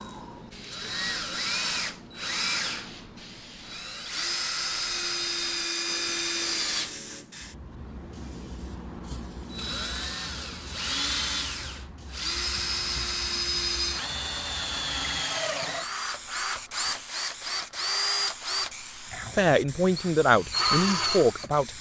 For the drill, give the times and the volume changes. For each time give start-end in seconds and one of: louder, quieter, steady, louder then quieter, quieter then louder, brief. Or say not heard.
0.0-21.7 steady.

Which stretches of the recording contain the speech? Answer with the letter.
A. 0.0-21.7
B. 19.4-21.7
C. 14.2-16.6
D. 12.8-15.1
B.